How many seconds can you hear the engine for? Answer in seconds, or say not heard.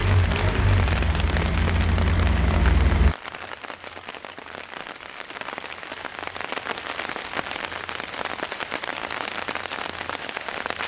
3 s.